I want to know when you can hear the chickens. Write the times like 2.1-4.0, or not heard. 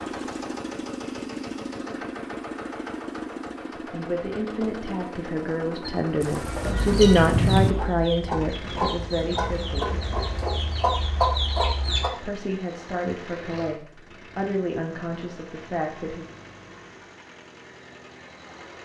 5.8-12.1.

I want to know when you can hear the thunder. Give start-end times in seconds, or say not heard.
6.2-7.8.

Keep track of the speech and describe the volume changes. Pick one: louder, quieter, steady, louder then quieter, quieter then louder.
louder then quieter.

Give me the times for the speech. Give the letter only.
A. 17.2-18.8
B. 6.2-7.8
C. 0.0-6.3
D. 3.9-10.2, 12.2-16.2
D.